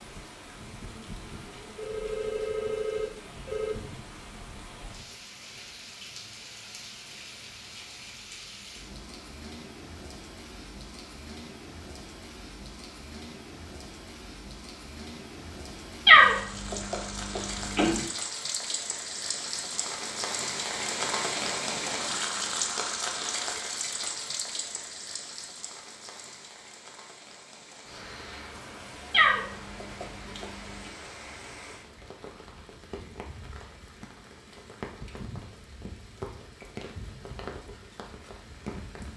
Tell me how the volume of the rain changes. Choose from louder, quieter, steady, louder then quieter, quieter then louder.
louder then quieter.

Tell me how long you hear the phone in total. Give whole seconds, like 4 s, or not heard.
2 s.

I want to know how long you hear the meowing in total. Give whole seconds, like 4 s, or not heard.
4 s.